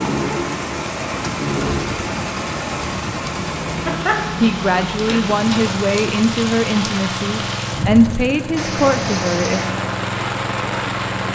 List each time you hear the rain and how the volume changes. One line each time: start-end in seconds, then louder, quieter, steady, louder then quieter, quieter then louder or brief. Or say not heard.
0.0-11.3 steady.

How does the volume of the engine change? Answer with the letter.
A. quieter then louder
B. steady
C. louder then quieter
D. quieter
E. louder
B.